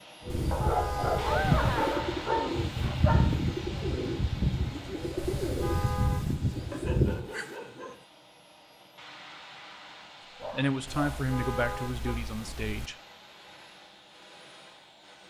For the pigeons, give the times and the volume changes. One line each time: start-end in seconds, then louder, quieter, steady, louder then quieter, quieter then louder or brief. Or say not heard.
0.2-7.2 steady.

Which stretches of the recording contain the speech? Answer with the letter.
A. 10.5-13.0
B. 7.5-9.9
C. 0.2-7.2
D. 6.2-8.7
A.